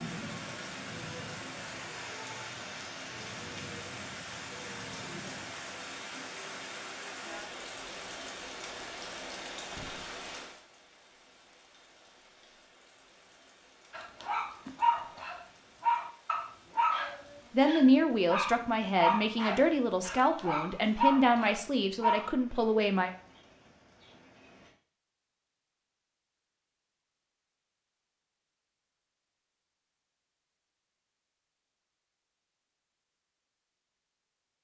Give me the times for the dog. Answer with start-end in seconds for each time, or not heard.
13.9-22.3.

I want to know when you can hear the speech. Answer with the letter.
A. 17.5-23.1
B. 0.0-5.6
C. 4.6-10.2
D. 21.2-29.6
A.